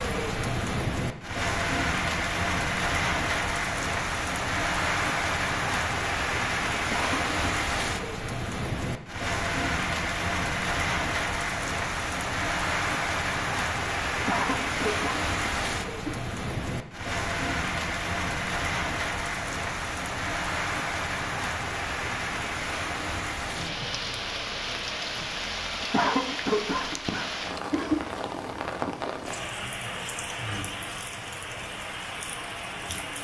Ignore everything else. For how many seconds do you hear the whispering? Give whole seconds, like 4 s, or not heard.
not heard.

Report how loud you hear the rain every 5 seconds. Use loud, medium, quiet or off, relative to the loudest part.
loud, loud, loud, loud, loud, medium, medium.